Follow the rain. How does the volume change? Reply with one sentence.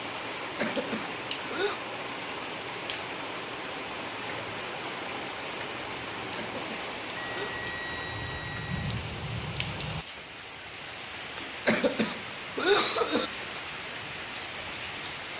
The volume of the rain stays about the same.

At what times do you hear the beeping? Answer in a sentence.
The beeping can be heard from 7.2 to 9.0 s.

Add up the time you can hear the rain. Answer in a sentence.
The rain can be heard for 15 seconds in total.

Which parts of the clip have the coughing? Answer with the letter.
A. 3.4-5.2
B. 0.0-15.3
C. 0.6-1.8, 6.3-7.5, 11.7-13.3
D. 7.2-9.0
C.